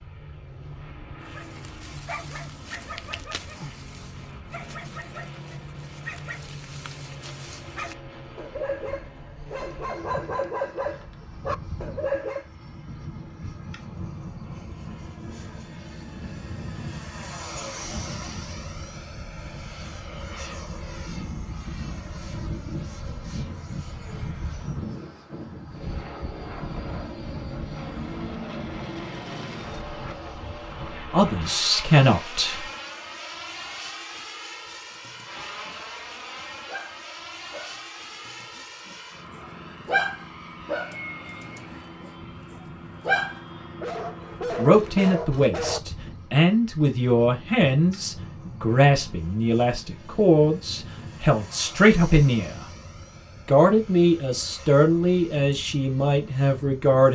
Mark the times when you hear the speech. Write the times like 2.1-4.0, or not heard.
31.1-32.6, 44.5-52.6, 53.5-57.1.